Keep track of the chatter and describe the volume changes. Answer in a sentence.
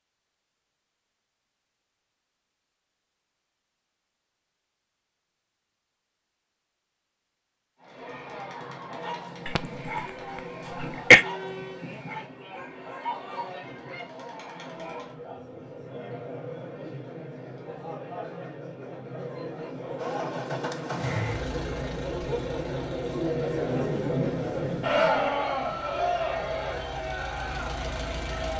The loudness of the chatter goes up.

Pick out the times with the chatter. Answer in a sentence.
You can hear the chatter from 7.8 to 28.5 s.